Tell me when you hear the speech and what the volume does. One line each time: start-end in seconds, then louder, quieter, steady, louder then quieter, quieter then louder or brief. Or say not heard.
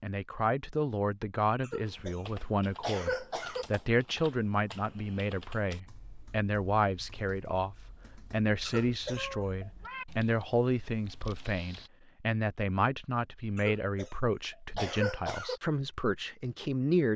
0.0-17.1 steady.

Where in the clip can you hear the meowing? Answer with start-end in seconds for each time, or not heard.
9.2-10.1.